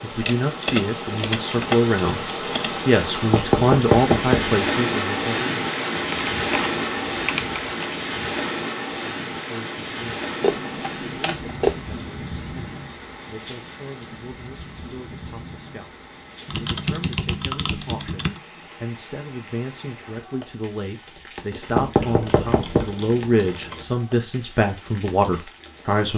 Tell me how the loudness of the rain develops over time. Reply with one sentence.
The volume of the rain goes down.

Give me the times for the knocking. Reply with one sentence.
The knocking can be heard from 3.3 to 4.5 s and from 21.8 to 22.9 s.